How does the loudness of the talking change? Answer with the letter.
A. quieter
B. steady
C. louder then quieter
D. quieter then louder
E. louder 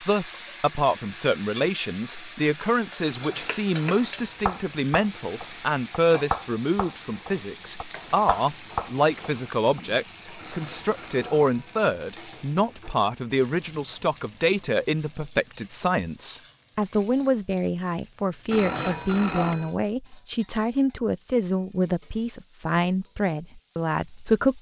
B.